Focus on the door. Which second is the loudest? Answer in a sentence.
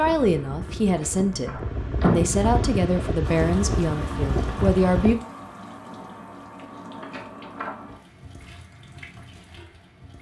The loudest moment of the door is at 2 seconds.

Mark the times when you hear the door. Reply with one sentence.
The door can be heard from 0.9 to 2.4 s and from 7.0 to 7.8 s.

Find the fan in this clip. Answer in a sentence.
The fan can be heard from 0.0 to 5.2 s.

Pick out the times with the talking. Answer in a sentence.
You can hear the talking from 0.0 to 5.2 s.